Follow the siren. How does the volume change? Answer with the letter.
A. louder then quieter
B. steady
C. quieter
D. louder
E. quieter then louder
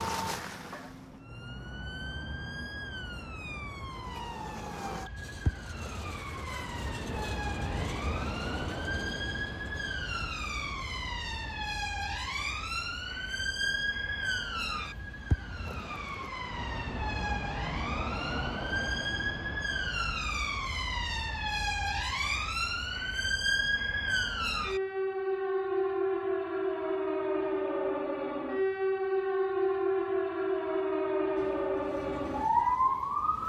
D.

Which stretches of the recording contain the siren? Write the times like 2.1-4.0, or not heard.
0.0-33.4.